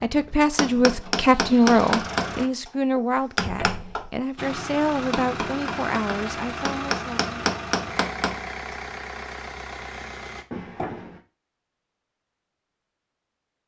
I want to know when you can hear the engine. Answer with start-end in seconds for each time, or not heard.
0.1-2.5, 4.3-10.4.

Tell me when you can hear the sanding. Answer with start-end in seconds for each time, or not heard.
not heard.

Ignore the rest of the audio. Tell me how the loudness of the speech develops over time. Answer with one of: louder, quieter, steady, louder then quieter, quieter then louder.
quieter.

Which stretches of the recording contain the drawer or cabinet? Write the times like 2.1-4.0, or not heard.
3.4-4.1, 10.5-11.2.